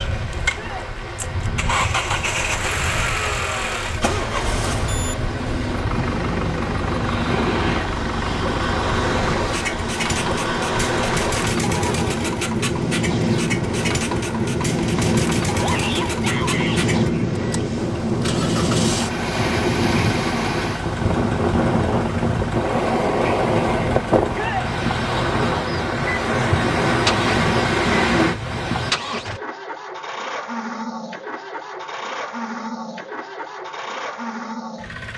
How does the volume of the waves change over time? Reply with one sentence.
The loudness of the waves goes up.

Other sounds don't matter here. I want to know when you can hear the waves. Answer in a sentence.
The waves can be heard from 0.0 to 28.9 s.